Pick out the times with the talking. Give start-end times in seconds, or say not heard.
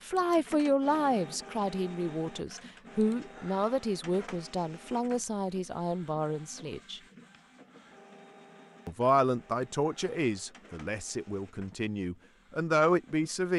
0.1-7.0, 8.8-13.5.